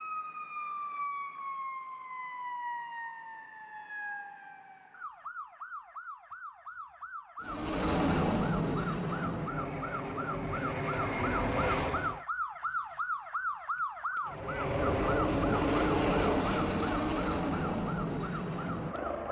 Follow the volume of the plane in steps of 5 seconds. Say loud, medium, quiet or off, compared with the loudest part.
off, loud, loud, loud.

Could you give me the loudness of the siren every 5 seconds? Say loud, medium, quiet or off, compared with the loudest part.
loud, medium, loud, medium.